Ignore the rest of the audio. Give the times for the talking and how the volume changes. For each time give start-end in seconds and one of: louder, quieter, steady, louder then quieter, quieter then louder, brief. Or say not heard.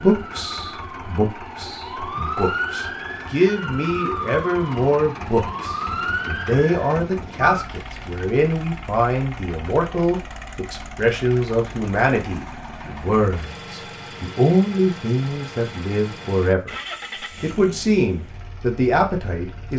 0.0-16.8 steady
17.4-19.7 brief.